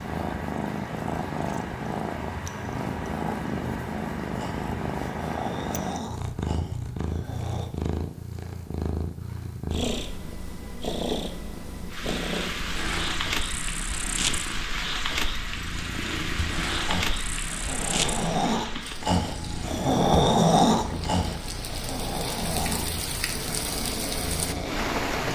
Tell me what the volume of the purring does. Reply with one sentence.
The volume of the purring goes down.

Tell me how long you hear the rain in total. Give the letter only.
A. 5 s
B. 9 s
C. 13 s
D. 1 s
C.